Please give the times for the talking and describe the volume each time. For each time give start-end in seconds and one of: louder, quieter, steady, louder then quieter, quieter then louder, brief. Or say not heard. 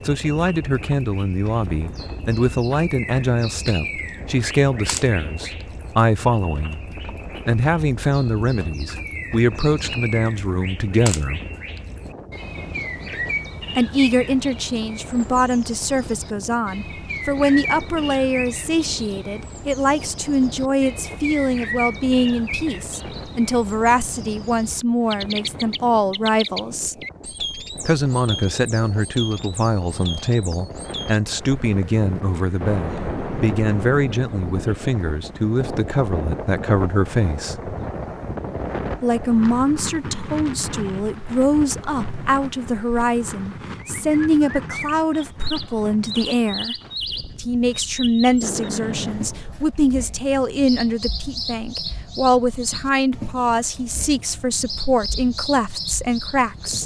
0.1-11.4 steady
13.8-26.9 steady
27.9-37.5 steady
39.0-46.8 steady
47.4-56.8 steady.